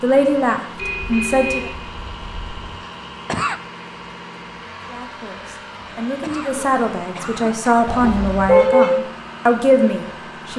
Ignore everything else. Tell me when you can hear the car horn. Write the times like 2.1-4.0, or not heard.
0.8-2.8, 7.8-8.9.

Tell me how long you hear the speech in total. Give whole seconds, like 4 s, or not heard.
7 s.